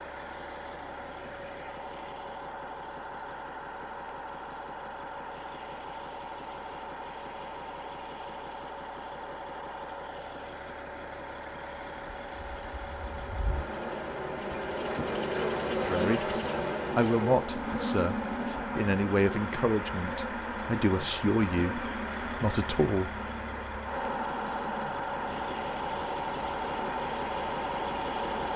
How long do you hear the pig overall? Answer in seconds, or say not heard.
not heard.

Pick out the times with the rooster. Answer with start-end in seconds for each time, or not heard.
not heard.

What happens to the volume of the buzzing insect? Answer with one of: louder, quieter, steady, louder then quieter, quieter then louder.
quieter.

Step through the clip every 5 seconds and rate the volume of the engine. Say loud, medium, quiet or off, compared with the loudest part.
medium, medium, medium, medium, loud, loud.